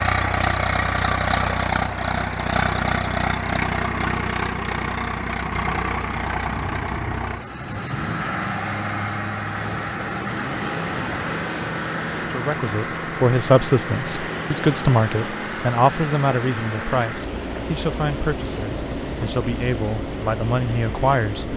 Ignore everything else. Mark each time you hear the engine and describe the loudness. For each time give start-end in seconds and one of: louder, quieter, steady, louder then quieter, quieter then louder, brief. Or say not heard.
0.0-21.5 quieter.